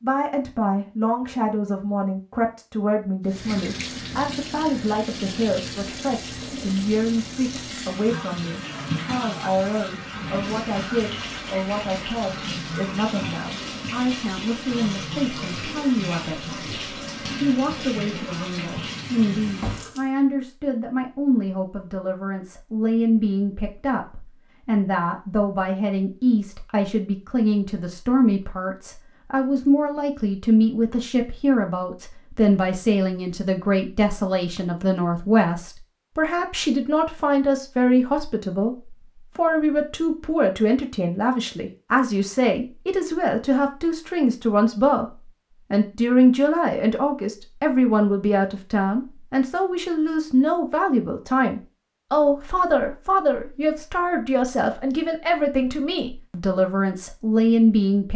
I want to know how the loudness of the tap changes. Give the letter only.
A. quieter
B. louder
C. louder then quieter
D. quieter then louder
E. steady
E.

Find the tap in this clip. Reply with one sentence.
The tap can be heard from 3.2 to 20.1 s.